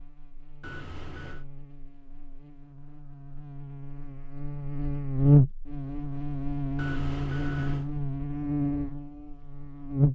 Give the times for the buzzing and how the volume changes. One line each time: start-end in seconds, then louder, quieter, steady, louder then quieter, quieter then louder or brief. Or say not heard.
0.0-10.1 louder then quieter.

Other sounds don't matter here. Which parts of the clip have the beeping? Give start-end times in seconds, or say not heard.
0.6-1.4, 6.8-7.9.